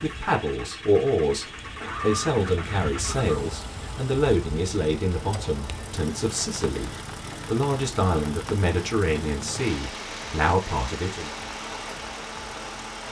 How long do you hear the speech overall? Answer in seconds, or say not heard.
11 s.